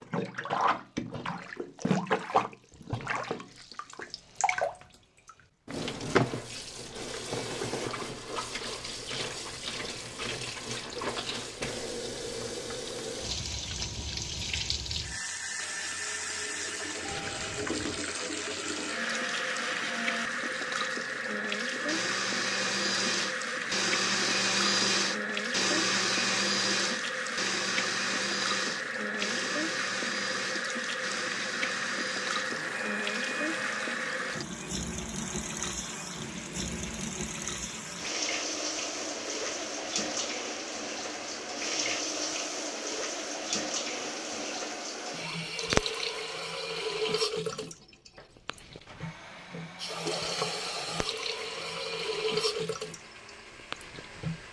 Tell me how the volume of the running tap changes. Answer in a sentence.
The volume of the running tap stays about the same.